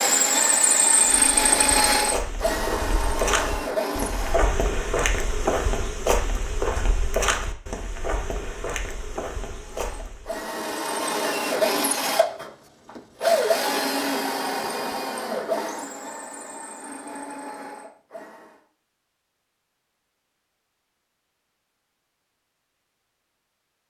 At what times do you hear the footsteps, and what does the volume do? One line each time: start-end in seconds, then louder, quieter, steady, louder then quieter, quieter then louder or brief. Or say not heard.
0.9-10.4 louder then quieter.